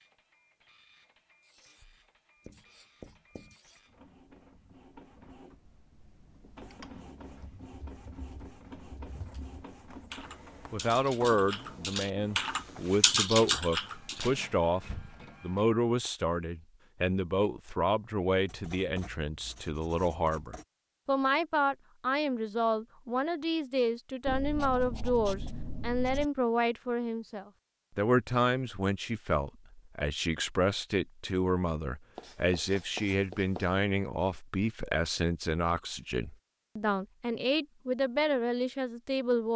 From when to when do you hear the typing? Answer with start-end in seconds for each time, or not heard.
6.7-15.2.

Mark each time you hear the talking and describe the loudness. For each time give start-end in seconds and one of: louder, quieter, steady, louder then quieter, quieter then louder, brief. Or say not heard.
10.7-39.5 steady.